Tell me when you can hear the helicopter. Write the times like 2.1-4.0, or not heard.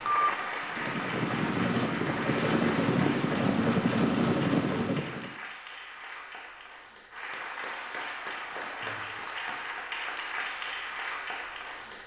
0.0-5.3.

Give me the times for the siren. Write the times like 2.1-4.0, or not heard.
not heard.